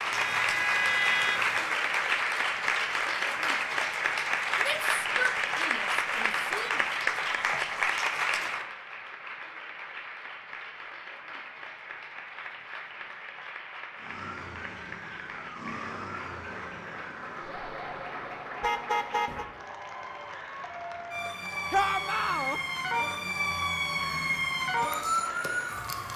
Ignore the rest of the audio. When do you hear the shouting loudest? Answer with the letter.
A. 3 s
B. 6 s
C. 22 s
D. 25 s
C.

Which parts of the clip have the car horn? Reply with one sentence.
You can hear the car horn from 0.1 to 1.6 s and from 18.6 to 19.4 s.